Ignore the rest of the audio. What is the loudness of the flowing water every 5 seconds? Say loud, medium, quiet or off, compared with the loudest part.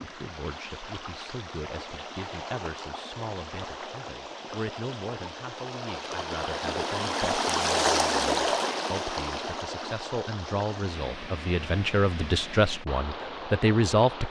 medium, loud, medium.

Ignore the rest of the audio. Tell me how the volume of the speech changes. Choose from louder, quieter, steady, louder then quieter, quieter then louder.
louder.